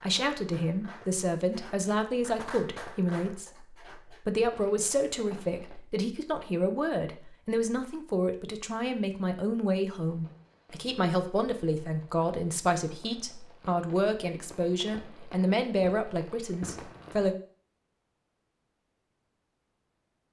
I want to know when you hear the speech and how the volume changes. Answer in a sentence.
You can hear the speech from 0.0 to 17.4 s, at a steady volume.